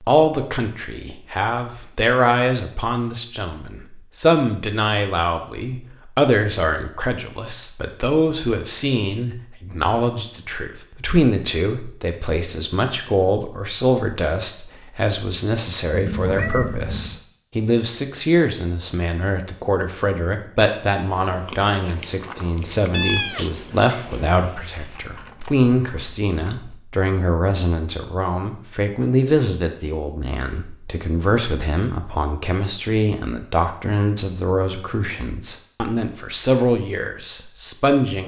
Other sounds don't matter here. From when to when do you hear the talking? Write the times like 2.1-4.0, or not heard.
0.0-38.2.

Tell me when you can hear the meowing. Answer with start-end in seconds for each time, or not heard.
15.9-17.2, 22.9-25.0.